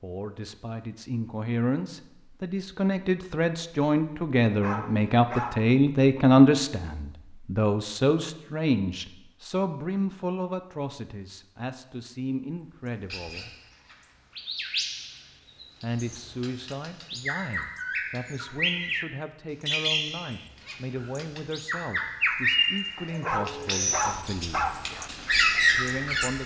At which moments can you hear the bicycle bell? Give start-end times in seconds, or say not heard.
not heard.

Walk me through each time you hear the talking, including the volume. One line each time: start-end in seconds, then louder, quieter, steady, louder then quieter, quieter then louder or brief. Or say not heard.
0.0-13.5 louder then quieter
15.8-24.7 steady
25.7-26.4 brief.